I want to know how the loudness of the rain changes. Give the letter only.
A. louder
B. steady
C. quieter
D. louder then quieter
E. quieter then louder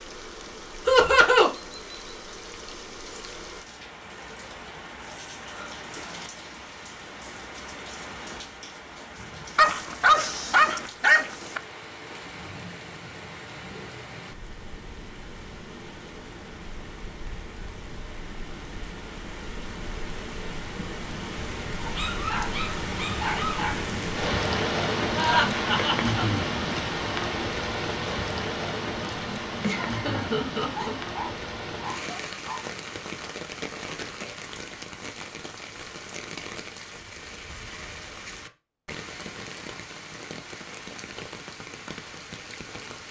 D.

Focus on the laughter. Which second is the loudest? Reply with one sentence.
The volume of the laughter peaks at 1 second.